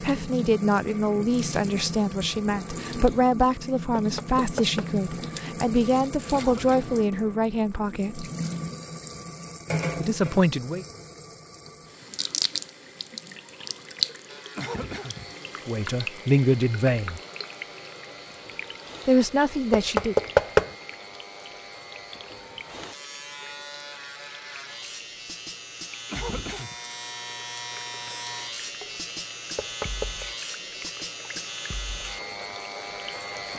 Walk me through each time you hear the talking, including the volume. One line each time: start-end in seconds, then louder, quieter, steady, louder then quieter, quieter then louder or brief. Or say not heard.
0.0-8.2 steady
10.0-10.8 brief
15.7-17.2 brief
19.1-20.1 brief.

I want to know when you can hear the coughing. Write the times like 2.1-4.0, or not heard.
6.3-7.0, 14.6-15.3, 26.1-26.8.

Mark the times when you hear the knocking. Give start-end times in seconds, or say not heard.
4.0-5.0, 19.7-20.7, 29.6-30.2.